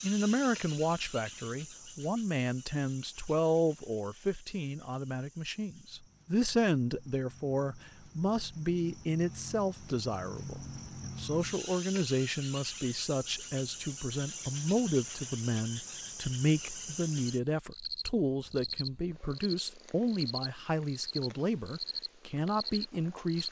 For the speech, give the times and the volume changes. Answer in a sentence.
You can hear the speech from 0.0 to 23.4 s, at a steady volume.